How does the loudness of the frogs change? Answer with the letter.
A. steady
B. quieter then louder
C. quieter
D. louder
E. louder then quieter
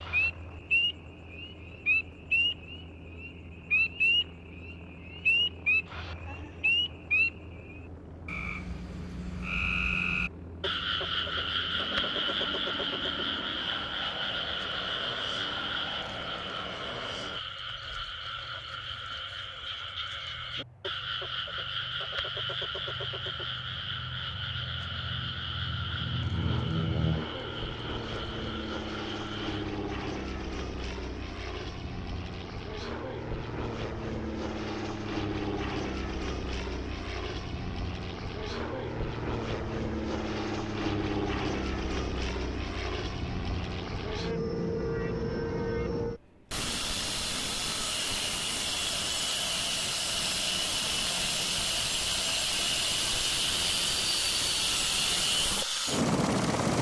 C.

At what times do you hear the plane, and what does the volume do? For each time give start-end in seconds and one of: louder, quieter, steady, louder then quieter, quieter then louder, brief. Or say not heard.
0.0-56.7 louder.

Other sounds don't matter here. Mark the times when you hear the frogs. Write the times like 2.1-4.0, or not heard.
0.0-29.6.